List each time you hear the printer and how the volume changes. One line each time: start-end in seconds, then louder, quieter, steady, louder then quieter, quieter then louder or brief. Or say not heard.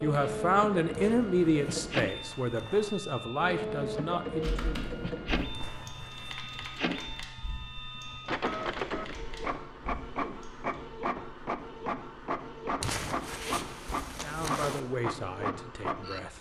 0.0-16.3 steady.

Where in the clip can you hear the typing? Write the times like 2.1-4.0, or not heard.
4.4-10.8.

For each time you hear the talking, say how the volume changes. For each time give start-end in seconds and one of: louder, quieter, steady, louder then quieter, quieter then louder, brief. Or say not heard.
0.0-4.8 quieter
14.2-16.3 brief.